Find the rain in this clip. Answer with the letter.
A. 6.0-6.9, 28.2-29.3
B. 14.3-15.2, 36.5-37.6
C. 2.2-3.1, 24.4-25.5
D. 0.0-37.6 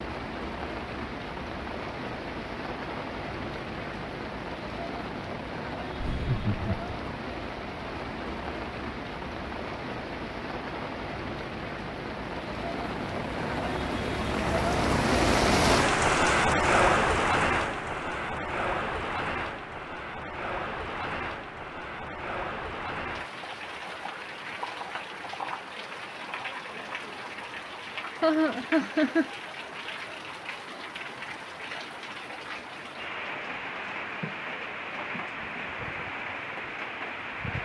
D.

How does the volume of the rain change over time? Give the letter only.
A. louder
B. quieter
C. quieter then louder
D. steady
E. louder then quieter
E.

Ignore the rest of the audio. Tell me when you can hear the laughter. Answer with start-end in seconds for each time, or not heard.
6.0-6.9, 28.2-29.3.